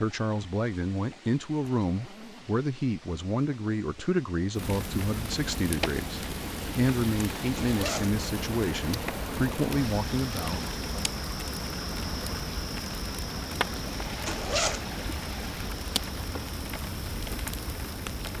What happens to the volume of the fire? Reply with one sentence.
The volume of the fire stays about the same.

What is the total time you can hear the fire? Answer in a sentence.
The fire can be heard for 14 seconds in total.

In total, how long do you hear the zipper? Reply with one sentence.
The zipper can be heard for 2 seconds in total.